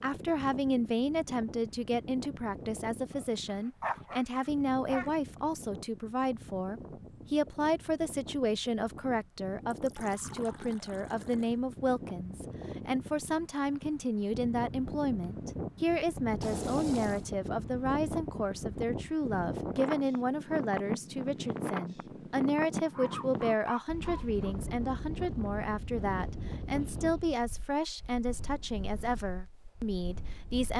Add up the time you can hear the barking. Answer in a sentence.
You can hear the barking for 4 seconds altogether.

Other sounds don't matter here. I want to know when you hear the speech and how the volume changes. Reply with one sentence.
The speech can be heard from 0.0 to 30.7 s, at a steady volume.